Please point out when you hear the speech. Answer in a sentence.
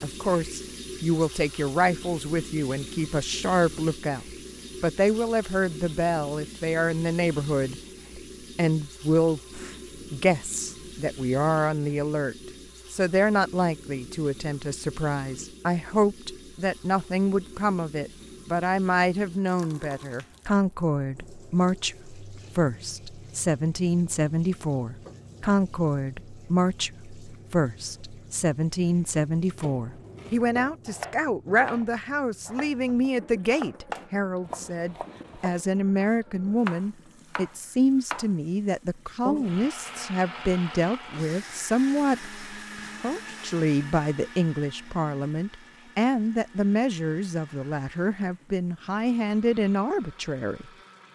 You can hear the speech from 0.0 to 50.7 s.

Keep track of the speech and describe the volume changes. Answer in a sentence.
The volume of the speech stays about the same.